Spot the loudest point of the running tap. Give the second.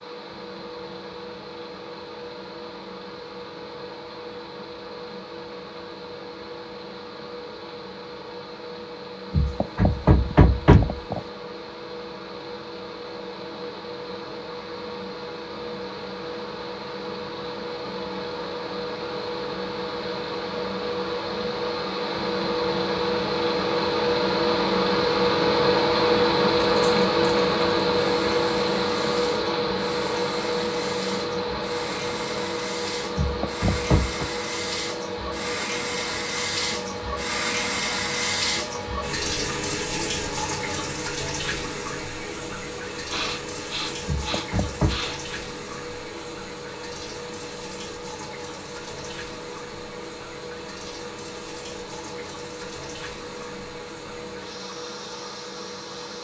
38 s.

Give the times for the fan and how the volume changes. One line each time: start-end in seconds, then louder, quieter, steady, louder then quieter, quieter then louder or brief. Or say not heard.
0.0-56.1 louder then quieter.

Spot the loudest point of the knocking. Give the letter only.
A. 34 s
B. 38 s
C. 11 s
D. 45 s
C.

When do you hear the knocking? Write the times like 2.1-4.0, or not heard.
9.3-11.2, 33.1-34.3, 44.0-45.0.